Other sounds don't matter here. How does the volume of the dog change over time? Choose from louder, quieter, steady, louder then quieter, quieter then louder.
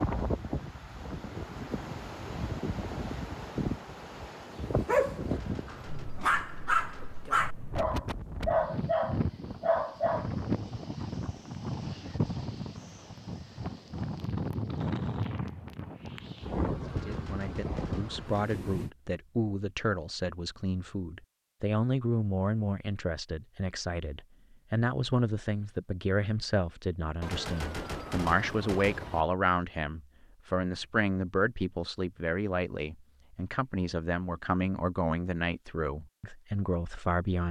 louder.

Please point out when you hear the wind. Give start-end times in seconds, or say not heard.
0.0-18.9.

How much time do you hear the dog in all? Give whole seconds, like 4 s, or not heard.
6 s.